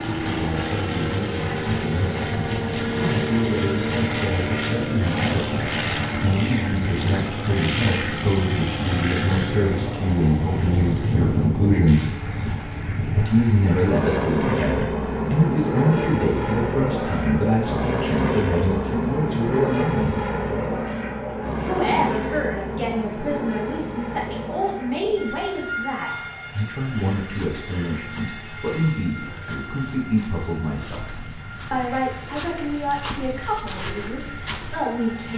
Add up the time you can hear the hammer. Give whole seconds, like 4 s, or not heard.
not heard.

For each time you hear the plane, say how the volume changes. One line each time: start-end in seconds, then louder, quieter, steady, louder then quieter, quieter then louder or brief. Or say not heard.
0.0-35.3 quieter.